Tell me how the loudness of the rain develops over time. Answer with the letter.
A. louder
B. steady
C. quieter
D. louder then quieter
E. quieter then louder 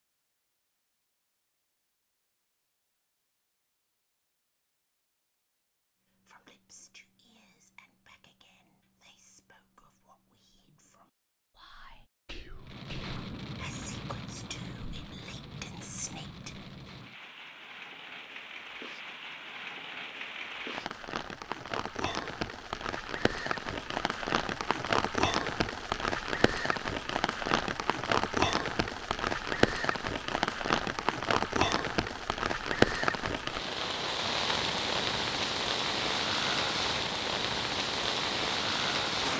A.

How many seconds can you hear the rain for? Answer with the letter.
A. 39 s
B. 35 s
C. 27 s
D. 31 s
C.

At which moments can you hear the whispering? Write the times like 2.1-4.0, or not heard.
6.1-16.7.